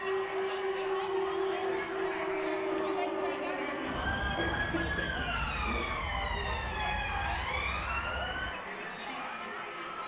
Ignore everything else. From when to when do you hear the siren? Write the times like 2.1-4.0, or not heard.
0.0-8.6.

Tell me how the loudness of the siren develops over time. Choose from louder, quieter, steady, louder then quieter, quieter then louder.
steady.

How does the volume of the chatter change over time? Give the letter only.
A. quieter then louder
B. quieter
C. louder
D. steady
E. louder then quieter
D.